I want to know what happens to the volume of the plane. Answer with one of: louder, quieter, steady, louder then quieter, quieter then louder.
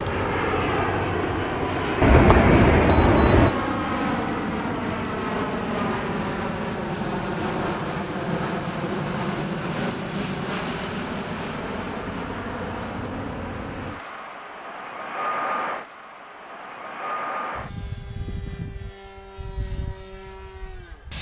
quieter.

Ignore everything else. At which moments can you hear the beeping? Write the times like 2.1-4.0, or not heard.
2.0-3.5.